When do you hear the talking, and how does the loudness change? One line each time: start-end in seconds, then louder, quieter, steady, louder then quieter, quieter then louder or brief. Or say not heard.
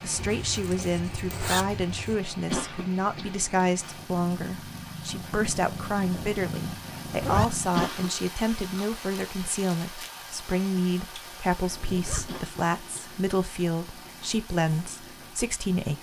0.0-15.9 steady.